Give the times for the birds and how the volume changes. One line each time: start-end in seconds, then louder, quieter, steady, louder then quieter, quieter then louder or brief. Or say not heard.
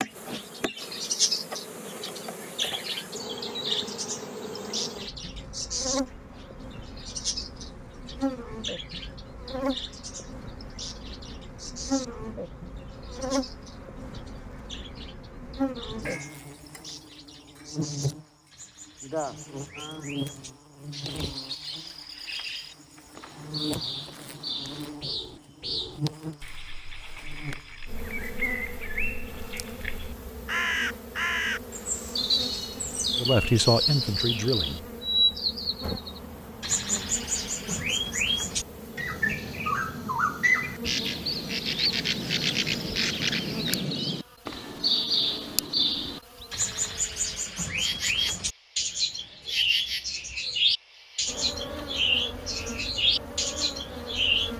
0.0-54.5 quieter then louder.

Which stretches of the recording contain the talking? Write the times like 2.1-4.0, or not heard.
33.2-34.9.